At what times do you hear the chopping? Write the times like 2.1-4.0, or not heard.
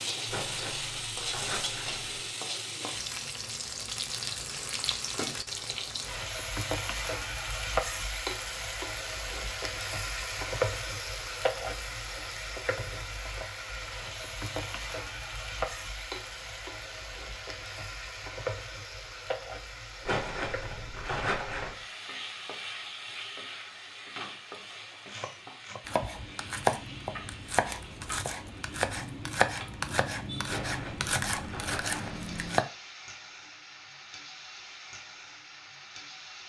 25.1-32.6.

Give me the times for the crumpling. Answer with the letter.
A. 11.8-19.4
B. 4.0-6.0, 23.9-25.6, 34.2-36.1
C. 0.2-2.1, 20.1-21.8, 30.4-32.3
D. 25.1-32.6
C.